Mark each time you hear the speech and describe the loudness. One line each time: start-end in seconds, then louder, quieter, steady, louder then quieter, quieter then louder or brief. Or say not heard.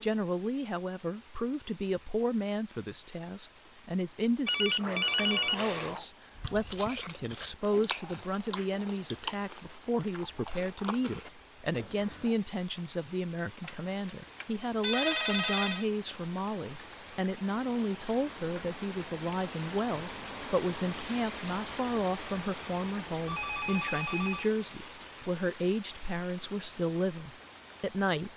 0.0-28.3 steady.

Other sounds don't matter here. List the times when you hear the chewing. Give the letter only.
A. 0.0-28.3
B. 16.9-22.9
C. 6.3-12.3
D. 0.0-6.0
C.